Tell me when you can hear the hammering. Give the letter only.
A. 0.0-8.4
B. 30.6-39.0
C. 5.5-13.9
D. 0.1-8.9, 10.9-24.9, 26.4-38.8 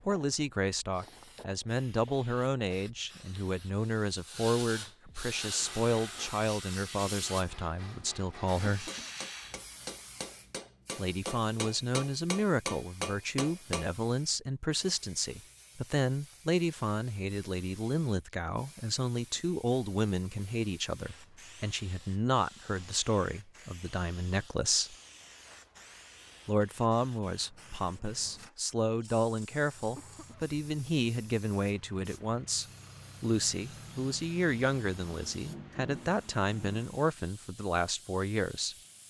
C.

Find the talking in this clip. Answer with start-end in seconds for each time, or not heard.
0.1-8.9, 10.9-24.9, 26.4-38.8.